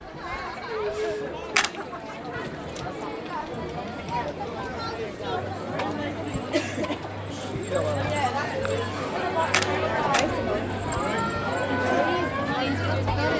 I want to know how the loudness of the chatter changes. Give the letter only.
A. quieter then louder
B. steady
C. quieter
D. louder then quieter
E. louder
E.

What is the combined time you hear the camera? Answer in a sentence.
The camera can be heard for 2 seconds in total.